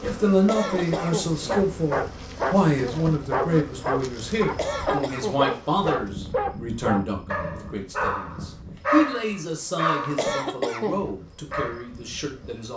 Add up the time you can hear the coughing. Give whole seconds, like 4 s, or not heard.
3 s.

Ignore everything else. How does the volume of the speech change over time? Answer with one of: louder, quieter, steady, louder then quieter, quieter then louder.
quieter.